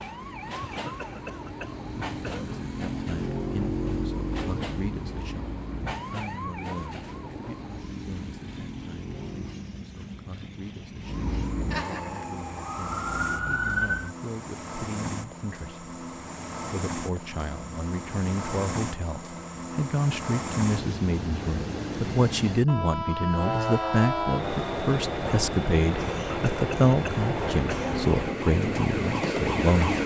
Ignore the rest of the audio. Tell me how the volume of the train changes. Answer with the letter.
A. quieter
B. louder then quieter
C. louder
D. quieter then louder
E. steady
C.